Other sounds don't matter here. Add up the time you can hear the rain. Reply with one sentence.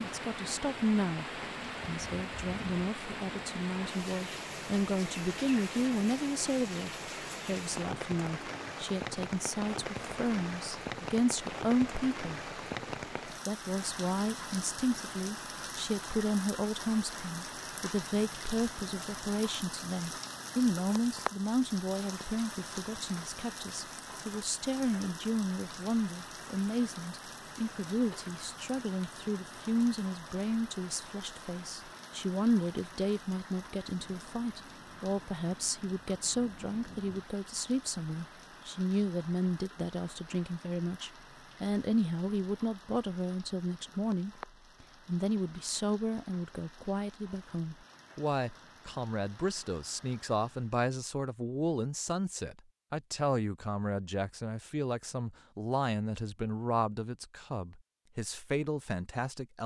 The rain can be heard for 51 seconds in total.